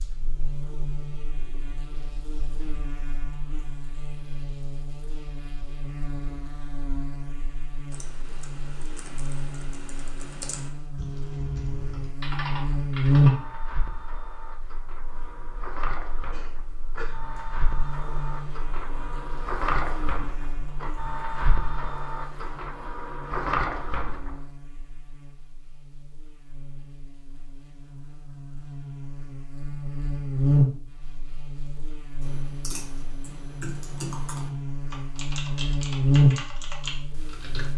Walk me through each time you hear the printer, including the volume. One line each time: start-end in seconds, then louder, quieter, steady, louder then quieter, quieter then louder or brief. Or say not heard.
12.5-24.5 louder.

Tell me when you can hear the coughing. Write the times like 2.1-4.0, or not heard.
16.2-17.2.